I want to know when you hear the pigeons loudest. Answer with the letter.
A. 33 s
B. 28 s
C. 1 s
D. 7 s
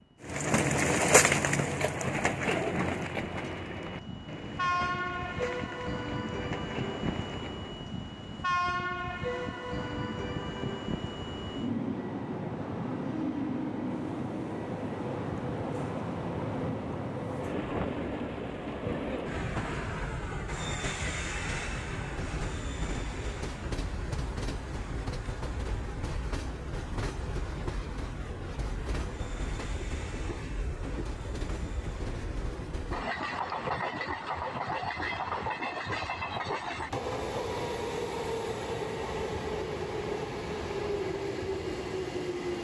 C.